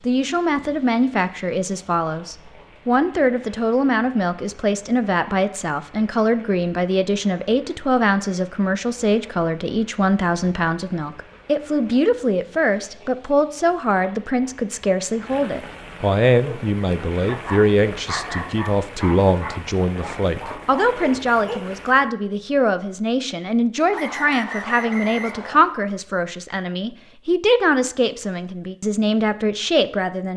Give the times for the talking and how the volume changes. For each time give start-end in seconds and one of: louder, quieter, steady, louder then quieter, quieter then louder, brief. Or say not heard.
0.0-30.3 steady.